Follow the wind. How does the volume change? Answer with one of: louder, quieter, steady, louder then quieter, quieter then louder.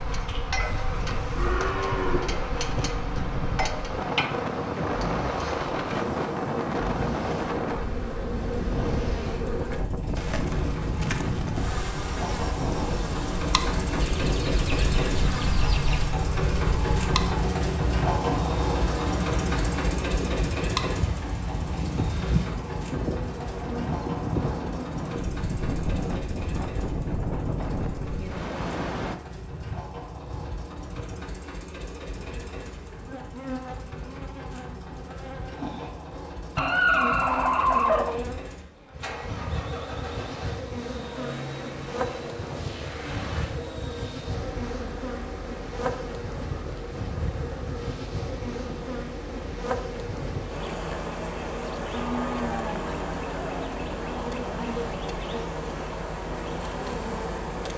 steady.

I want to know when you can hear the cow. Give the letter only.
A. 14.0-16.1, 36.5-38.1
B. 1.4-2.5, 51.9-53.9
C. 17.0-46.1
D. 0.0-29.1
B.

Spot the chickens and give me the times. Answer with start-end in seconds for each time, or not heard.
14.0-16.1, 36.5-38.1.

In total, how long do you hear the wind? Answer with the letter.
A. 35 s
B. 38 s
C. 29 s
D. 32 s
C.